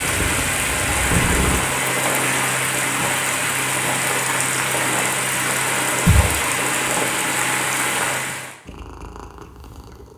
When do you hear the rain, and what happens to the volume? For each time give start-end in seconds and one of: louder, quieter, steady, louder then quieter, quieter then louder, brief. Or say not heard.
0.0-8.6 steady.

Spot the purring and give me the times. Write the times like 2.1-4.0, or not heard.
0.0-1.6, 8.7-10.1.